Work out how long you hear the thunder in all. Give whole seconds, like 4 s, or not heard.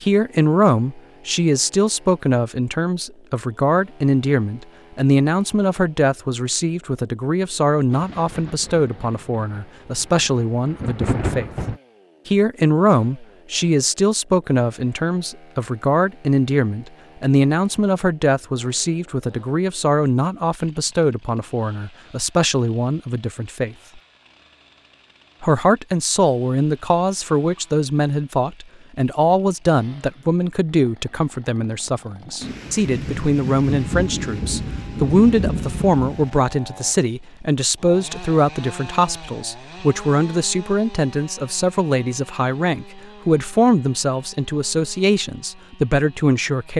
8 s.